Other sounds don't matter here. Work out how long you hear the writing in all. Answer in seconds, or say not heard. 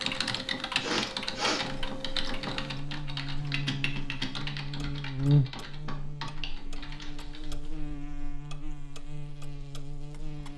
not heard.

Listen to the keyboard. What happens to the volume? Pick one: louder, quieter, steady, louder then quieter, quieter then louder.
quieter.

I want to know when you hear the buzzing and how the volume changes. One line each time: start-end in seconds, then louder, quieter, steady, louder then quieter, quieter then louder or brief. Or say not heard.
1.6-10.5 louder then quieter.